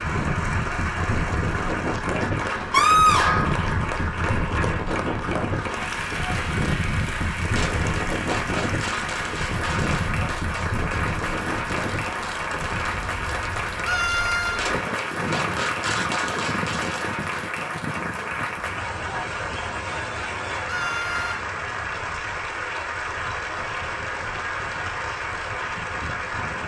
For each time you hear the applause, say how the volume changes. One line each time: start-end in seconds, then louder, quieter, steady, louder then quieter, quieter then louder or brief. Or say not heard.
0.0-26.6 steady.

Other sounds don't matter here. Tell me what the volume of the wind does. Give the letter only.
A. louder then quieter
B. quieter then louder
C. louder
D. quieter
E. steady
D.